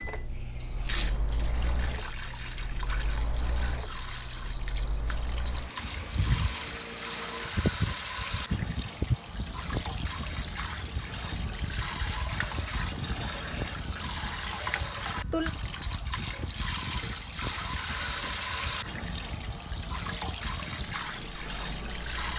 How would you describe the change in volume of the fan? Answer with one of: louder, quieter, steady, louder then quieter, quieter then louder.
louder then quieter.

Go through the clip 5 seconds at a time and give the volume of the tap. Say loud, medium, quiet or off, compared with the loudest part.
medium, loud, loud, loud, loud.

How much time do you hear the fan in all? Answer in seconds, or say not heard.
22 s.